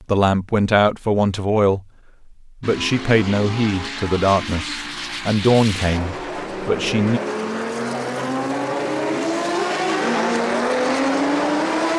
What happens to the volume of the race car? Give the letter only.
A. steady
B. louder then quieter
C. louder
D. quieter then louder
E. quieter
C.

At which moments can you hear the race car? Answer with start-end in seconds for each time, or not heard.
2.6-11.9.